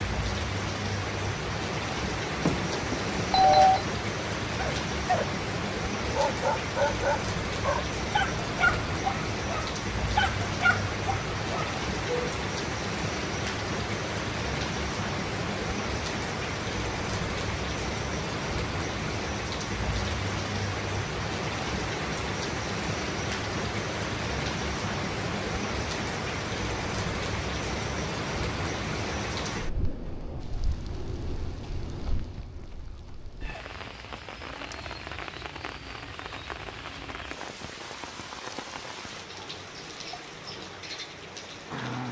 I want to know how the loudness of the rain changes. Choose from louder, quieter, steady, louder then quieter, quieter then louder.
quieter.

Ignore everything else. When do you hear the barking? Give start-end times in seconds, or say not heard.
4.5-5.2, 6.0-12.3.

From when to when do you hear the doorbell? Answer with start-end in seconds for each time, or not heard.
2.4-3.9.